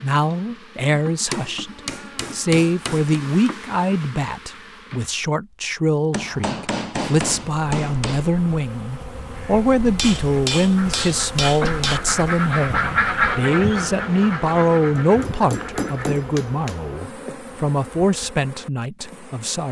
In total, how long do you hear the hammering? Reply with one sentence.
The hammering can be heard for 8 seconds in total.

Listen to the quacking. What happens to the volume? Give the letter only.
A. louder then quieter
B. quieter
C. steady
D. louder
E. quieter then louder
A.